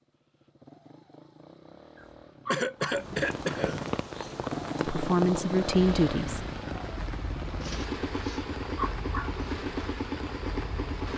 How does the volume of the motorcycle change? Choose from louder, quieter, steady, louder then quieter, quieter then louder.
louder.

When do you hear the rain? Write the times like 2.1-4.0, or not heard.
2.8-11.1.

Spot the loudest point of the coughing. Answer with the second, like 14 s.
3 s.